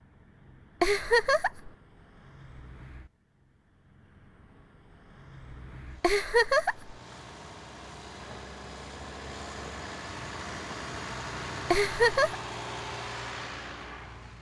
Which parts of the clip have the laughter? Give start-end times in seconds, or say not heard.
0.8-1.7, 6.0-7.0, 11.7-12.3.